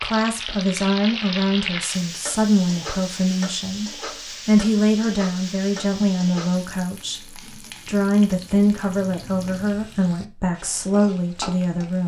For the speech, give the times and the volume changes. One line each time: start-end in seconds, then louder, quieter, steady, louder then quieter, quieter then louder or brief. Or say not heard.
0.0-12.0 steady.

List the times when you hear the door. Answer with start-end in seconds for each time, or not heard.
not heard.